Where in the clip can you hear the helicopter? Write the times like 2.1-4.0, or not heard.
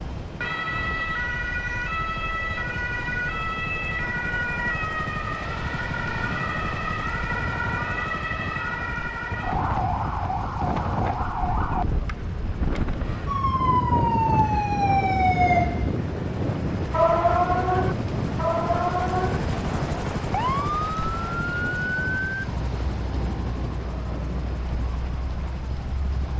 0.0-26.3.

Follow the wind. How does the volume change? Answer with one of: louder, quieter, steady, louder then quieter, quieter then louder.
louder then quieter.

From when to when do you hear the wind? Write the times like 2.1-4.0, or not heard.
0.0-26.3.